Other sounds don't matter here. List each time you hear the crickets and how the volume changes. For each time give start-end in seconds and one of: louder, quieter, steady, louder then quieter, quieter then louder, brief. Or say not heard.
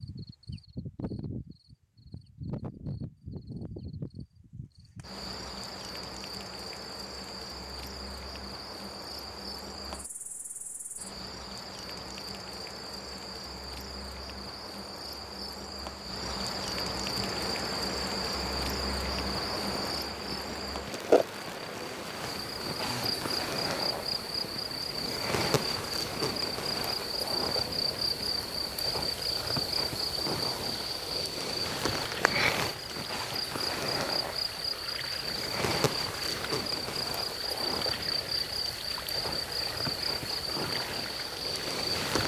0.0-42.2 louder.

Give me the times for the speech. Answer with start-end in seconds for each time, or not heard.
not heard.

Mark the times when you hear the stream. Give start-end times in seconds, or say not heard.
17.1-42.2.